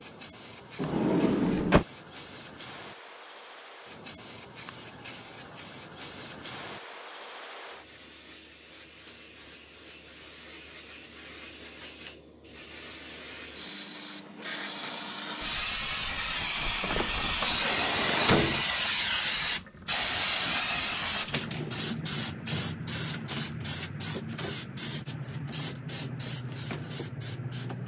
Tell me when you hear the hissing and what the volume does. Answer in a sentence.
The hissing can be heard from 0.0 to 27.8 s, getting louder then quieter.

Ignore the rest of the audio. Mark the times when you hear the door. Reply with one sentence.
You can hear the door from 0.8 to 1.9 s and from 16.8 to 18.6 s.